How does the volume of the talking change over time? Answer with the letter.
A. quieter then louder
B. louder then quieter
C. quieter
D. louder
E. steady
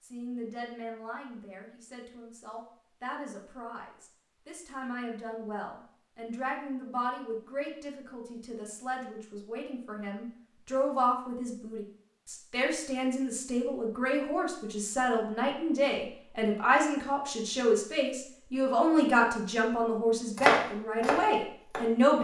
D.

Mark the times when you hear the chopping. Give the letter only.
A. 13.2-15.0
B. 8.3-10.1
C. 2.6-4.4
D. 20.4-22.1
D.